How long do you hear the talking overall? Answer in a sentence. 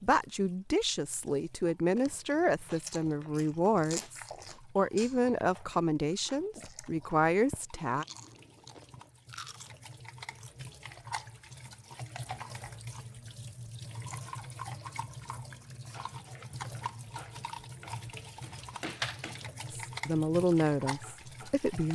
You can hear the talking for 10 seconds altogether.